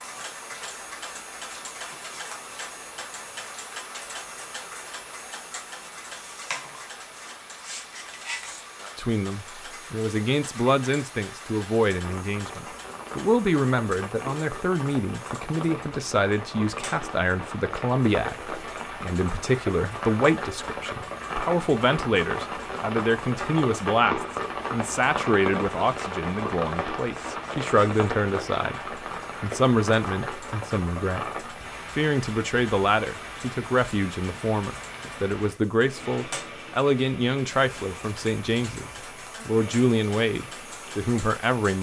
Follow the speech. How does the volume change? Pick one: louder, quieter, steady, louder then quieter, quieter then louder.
steady.